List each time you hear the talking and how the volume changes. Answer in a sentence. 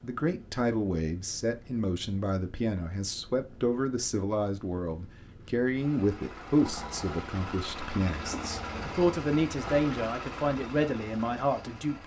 You can hear the talking from 0.0 to 12.0 s, at a steady volume.